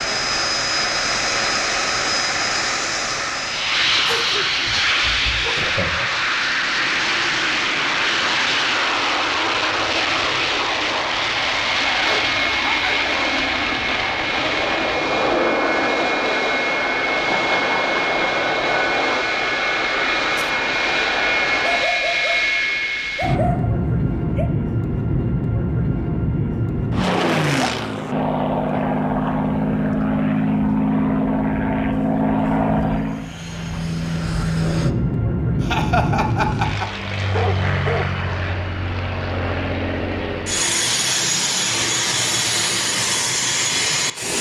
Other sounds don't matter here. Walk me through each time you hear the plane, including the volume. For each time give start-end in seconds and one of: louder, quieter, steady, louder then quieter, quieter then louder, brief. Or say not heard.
0.0-44.3 steady.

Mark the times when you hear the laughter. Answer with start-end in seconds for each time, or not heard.
5.5-6.2, 17.1-18.8, 35.6-36.9.